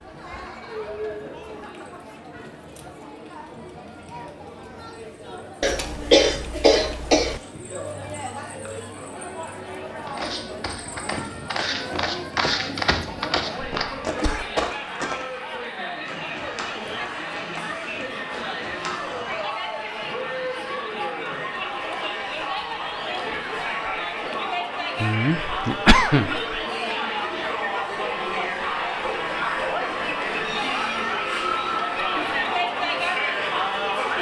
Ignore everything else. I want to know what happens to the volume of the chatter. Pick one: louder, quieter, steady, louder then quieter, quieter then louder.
louder.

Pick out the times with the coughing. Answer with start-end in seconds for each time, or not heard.
5.6-7.4, 13.7-14.4, 25.0-26.6.